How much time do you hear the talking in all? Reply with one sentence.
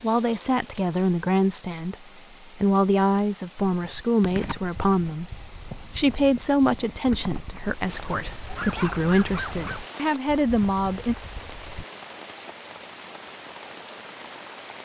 The talking can be heard for 11 seconds in total.